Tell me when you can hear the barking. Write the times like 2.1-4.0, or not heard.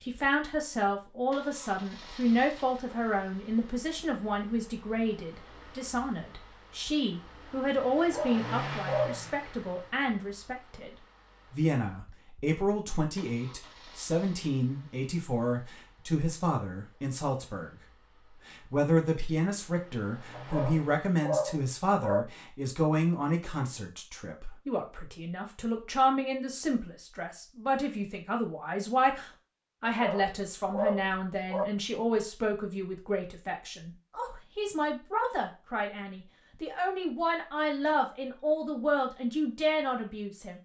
8.0-9.2, 20.3-22.2, 29.8-31.7.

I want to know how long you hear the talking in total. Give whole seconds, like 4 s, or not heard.
40 s.